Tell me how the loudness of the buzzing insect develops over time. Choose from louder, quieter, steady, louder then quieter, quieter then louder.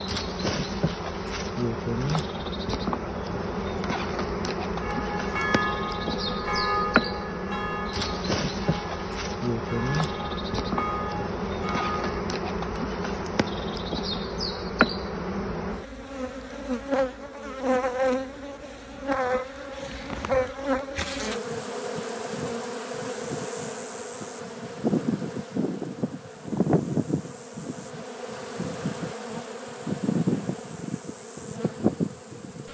steady.